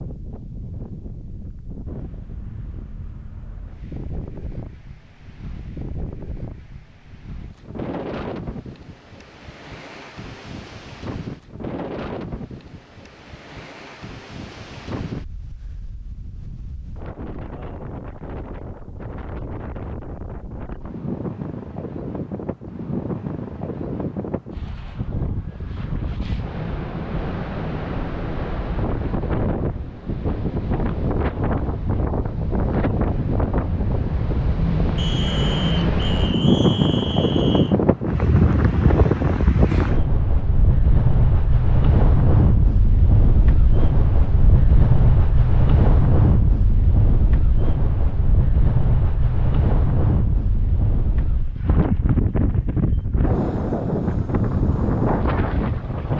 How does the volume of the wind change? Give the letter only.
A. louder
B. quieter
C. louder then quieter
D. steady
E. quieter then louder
A.